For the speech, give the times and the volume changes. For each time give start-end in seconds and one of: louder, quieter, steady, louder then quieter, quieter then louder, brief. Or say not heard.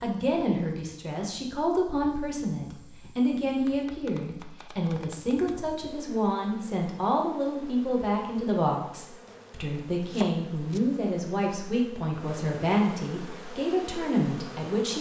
0.0-14.9 steady.